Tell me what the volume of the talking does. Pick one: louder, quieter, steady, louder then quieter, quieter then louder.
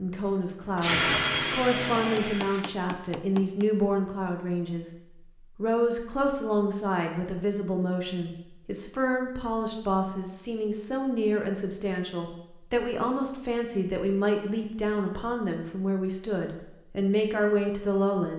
steady.